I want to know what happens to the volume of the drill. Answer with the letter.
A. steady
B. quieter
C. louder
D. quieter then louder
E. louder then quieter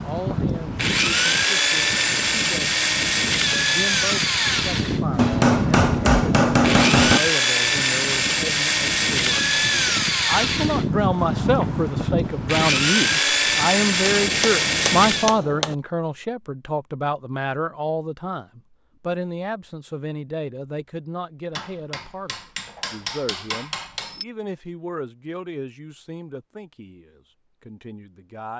A.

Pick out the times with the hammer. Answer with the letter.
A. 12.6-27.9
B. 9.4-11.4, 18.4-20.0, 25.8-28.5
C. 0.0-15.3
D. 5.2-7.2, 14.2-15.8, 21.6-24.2
D.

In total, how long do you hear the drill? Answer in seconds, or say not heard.
15 s.